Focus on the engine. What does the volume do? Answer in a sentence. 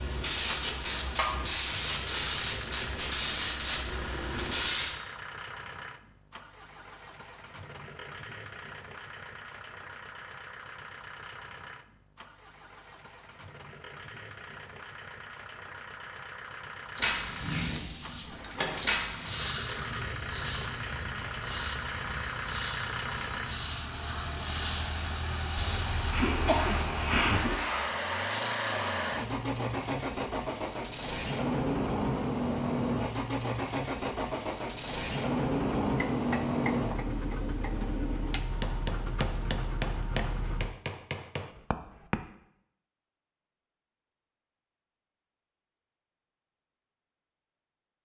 The loudness of the engine goes up.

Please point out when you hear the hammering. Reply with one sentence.
The hammering can be heard from 35.8 to 42.2 s.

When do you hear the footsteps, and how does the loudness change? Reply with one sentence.
The footsteps can't be heard in this clip.